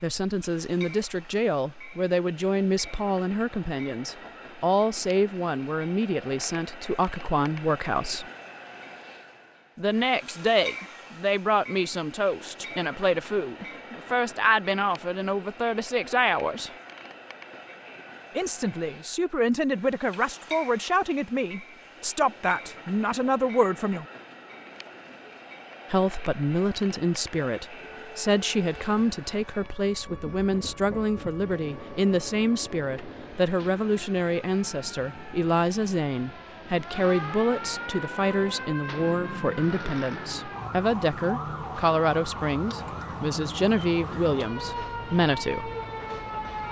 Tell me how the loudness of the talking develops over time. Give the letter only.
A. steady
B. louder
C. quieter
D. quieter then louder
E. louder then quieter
A.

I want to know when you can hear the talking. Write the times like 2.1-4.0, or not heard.
0.0-8.2, 9.8-16.7, 18.4-24.1, 25.9-45.7.